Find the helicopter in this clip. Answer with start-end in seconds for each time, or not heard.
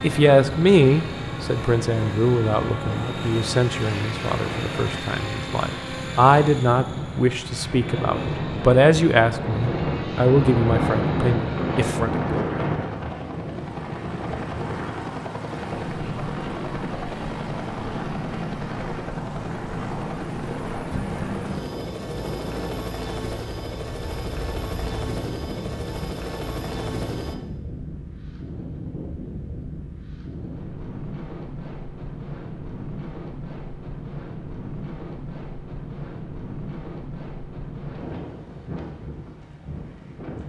0.0-27.4.